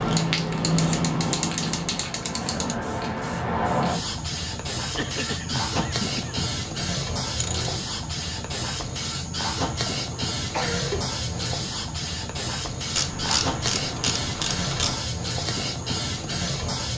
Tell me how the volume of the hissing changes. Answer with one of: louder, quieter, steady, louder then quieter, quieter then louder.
steady.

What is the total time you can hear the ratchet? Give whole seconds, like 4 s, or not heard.
5 s.